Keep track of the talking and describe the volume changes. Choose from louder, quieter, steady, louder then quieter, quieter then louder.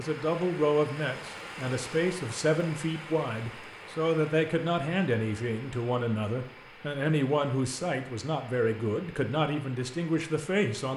steady.